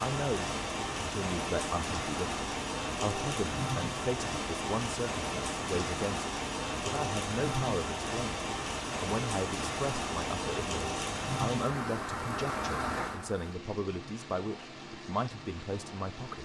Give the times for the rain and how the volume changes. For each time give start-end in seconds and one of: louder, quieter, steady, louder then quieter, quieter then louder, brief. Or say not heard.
0.0-16.4 quieter.